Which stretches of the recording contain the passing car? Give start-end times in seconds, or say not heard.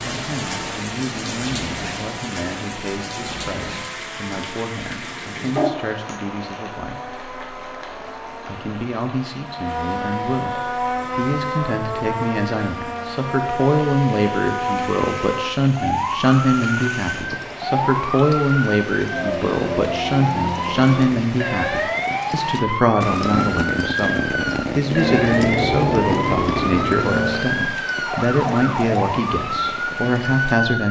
24.9-27.6.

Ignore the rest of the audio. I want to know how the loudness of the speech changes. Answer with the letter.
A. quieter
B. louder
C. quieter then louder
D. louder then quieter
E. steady
B.